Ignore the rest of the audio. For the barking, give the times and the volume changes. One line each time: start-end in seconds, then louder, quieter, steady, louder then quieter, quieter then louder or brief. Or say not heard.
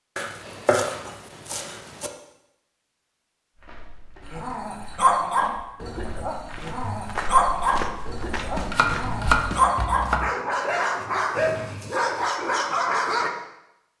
4.3-13.3 quieter then louder.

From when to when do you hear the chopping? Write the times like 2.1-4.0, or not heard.
0.1-2.1, 8.5-10.3.